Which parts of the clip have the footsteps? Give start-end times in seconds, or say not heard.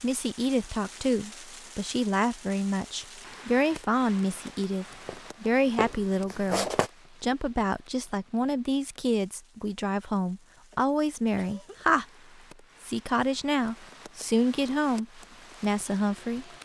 5.0-6.9.